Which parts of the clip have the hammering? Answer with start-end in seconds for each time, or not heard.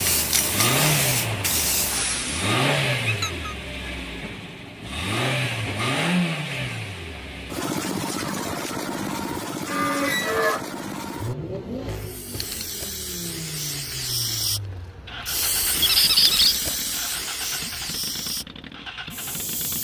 not heard.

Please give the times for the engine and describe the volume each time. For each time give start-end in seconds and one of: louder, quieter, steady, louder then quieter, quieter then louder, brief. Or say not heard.
0.0-19.7 quieter.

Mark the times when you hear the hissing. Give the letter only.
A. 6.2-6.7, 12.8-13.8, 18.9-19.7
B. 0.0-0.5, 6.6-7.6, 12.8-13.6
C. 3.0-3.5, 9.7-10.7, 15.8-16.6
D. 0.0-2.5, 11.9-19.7
D.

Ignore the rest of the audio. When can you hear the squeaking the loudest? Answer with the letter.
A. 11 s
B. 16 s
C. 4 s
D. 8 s
B.